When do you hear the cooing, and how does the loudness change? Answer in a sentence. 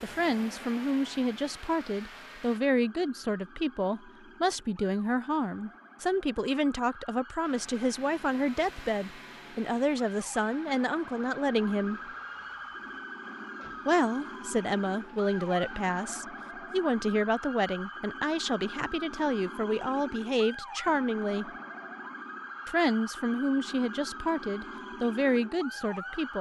You can't hear the cooing here.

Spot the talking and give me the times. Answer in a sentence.
You can hear the talking from 0.0 to 12.0 s, from 13.8 to 21.5 s and from 22.6 to 26.3 s.